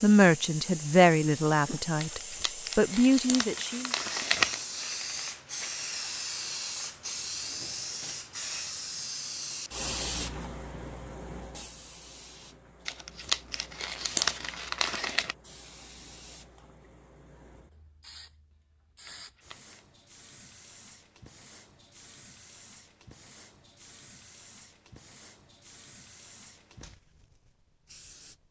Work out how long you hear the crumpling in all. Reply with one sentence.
You can hear the crumpling for 6 seconds altogether.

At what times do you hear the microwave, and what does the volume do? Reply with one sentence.
The microwave can't be heard in this clip.